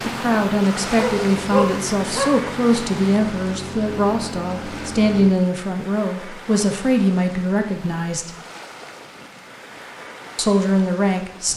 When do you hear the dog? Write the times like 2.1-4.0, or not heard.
0.9-2.4.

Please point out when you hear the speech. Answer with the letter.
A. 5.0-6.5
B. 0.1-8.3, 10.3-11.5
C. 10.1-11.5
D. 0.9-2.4
B.